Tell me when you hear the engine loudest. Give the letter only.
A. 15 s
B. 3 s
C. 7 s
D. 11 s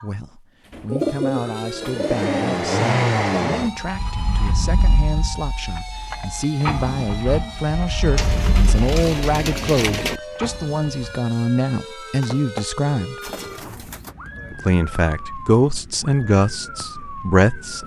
B.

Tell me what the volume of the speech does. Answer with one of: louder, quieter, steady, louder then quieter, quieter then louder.
louder.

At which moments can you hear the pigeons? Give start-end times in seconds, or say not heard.
0.8-2.6, 8.2-10.2, 12.2-14.2.